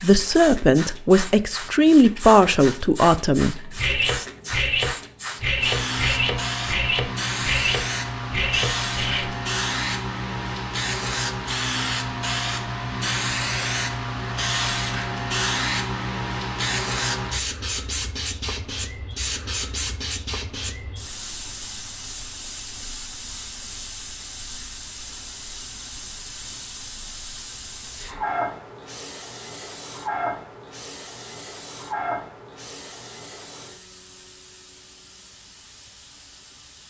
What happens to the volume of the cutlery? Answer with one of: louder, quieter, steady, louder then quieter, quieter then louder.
steady.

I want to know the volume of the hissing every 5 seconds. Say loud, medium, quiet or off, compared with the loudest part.
medium, loud, loud, loud, medium, medium, medium, quiet.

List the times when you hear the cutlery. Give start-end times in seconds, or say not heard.
3.2-9.3.